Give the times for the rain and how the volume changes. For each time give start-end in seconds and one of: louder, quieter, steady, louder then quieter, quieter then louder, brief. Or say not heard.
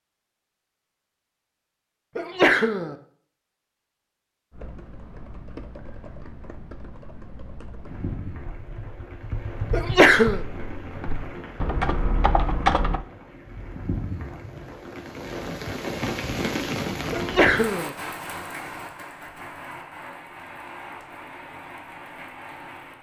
7.8-22.9 louder then quieter.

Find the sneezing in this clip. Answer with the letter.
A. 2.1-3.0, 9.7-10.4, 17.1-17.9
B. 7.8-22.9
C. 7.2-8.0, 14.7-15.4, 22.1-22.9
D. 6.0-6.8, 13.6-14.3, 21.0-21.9
A.